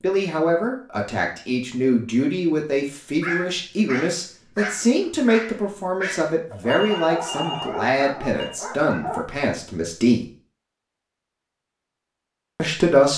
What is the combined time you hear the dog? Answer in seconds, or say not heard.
6 s.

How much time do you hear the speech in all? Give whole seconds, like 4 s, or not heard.
11 s.